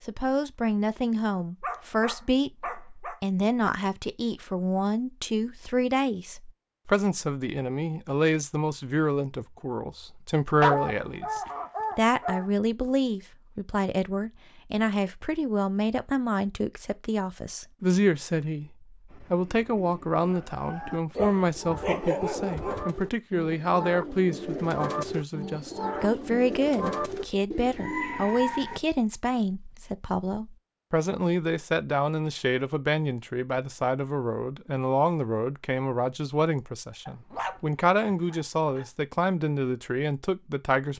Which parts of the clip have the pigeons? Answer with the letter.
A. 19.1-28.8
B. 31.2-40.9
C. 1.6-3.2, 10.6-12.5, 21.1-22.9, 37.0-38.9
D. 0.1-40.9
A.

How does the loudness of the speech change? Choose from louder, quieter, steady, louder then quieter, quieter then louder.
steady.